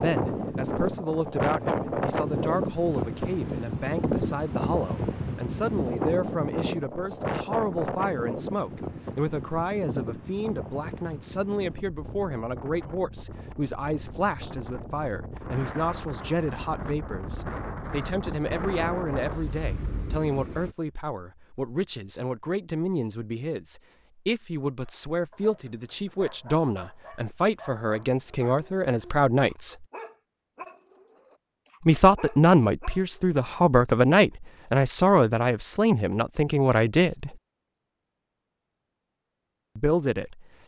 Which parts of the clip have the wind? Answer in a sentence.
You can hear the wind from 0.0 to 20.8 s.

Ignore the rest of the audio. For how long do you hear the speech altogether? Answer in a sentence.
You can hear the speech for 36 seconds altogether.